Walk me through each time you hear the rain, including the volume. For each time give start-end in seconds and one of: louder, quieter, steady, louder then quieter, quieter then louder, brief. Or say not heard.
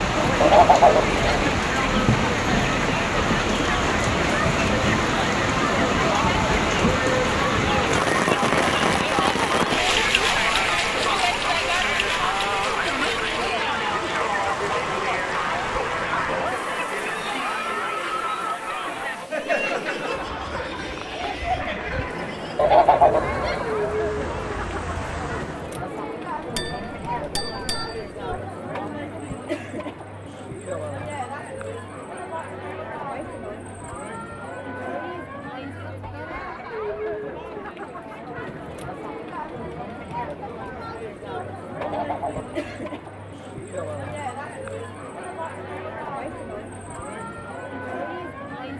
0.0-25.8 quieter.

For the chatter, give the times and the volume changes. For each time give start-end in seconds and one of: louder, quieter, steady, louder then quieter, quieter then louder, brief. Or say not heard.
0.1-48.7 quieter.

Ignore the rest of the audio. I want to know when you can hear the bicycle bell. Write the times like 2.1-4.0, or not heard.
26.6-28.4.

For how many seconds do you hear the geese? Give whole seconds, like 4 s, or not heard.
3 s.